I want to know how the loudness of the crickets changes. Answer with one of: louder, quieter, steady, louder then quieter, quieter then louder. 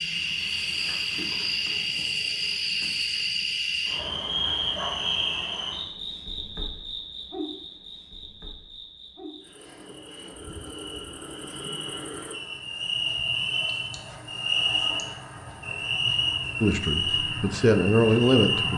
quieter then louder.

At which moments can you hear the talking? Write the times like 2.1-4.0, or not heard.
16.6-18.7.